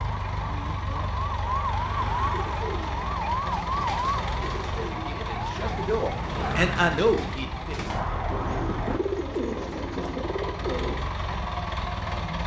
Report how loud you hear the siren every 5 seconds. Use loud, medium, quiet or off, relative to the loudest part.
loud, loud, off.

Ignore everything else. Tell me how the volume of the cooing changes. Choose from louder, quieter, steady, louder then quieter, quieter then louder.
louder.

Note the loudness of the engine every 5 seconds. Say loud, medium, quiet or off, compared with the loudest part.
loud, medium, loud.